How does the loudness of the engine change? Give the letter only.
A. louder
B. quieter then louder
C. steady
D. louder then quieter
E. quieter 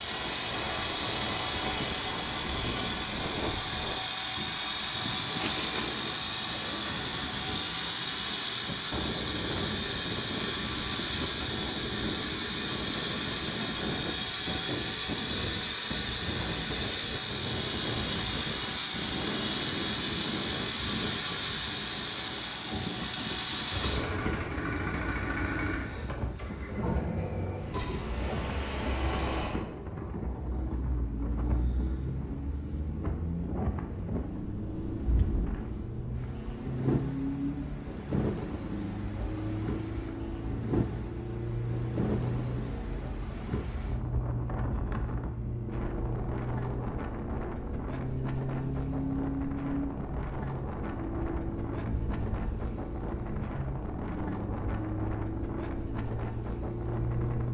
C.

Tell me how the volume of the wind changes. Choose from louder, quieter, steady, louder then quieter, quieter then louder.
steady.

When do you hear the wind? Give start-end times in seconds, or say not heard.
0.0-57.4.